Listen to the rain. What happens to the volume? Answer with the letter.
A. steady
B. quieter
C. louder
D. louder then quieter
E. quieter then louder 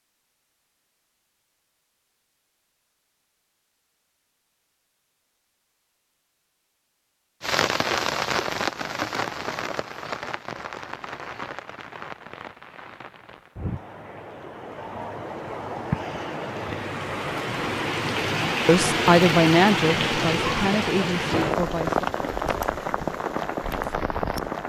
E.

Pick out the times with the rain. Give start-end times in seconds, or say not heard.
7.4-24.6.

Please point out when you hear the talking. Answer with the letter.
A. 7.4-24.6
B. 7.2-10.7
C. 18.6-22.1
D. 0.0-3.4
C.